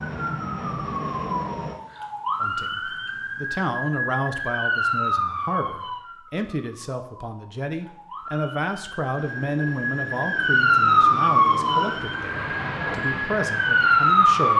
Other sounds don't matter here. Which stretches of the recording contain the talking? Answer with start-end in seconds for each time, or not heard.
2.4-14.5.